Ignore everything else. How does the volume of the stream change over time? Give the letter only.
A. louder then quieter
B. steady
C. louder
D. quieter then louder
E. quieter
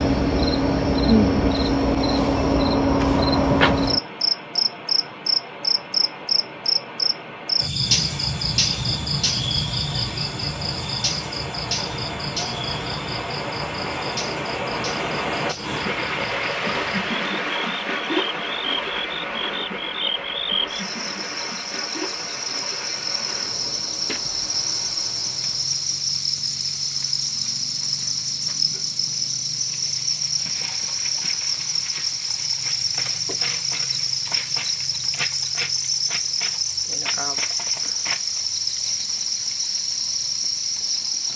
A.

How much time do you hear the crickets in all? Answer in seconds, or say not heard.
41 s.